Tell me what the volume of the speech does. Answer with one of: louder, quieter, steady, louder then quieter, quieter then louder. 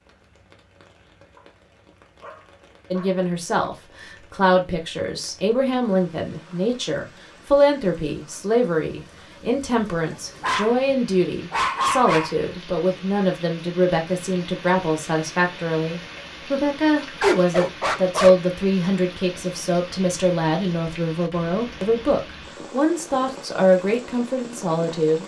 steady.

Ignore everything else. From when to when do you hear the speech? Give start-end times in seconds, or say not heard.
2.9-25.2.